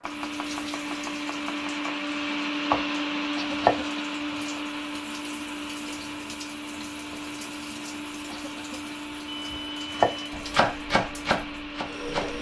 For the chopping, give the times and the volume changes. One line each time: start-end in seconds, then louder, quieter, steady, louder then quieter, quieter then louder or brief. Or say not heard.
0.0-4.6 quieter then louder
9.9-12.3 brief.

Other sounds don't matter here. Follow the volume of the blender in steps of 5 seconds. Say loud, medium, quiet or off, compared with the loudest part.
loud, medium, medium.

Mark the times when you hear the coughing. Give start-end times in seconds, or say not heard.
3.4-4.2, 8.2-9.0.